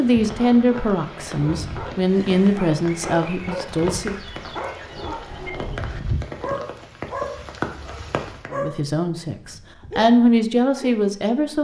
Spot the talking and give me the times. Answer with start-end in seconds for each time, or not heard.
0.0-4.2, 8.5-11.5.